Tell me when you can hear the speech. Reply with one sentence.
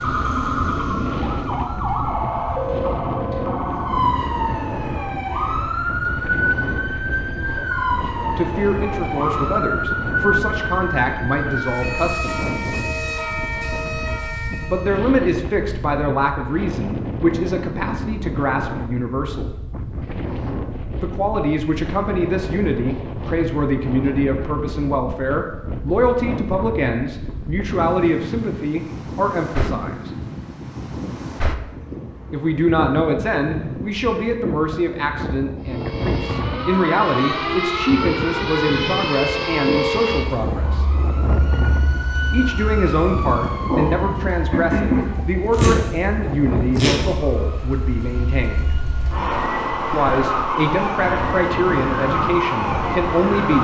The speech can be heard from 8.3 to 12.3 s, from 14.7 to 19.5 s, from 21.0 to 30.1 s, from 32.3 to 40.9 s, from 42.3 to 48.8 s and from 49.9 to 53.5 s.